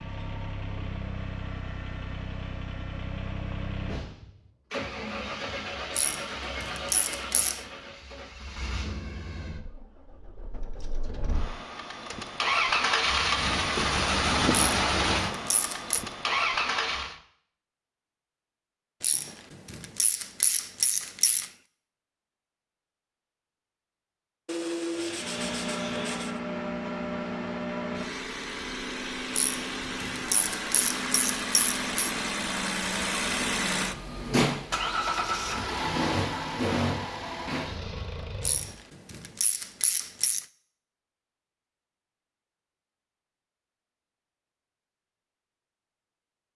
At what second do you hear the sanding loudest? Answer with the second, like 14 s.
25 s.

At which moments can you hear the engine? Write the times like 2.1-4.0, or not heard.
0.0-17.2, 25.1-38.8.